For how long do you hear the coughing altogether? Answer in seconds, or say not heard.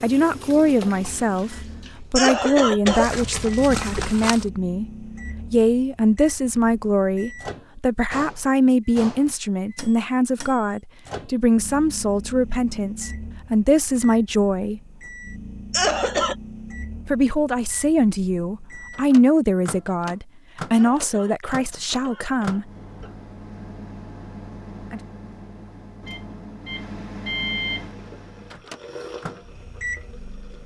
4 s.